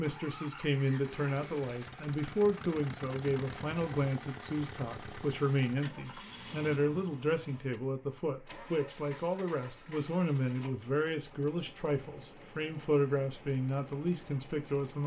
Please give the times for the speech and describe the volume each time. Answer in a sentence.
The speech can be heard from 0.0 to 15.0 s, at a steady volume.